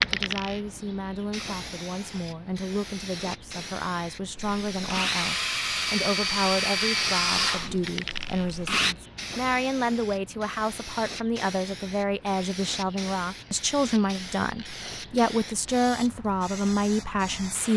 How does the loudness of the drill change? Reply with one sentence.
The volume of the drill goes down.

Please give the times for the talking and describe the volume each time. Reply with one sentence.
You can hear the talking from 0.0 to 17.7 s, getting louder.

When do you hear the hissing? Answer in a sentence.
You can hear the hissing from 0.0 to 17.7 s.